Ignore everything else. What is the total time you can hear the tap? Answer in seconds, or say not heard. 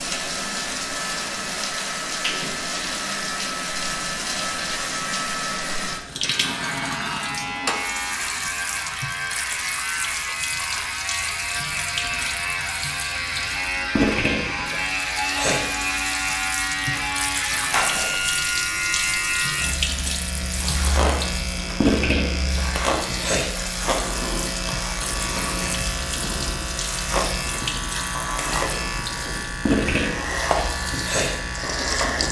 32 s.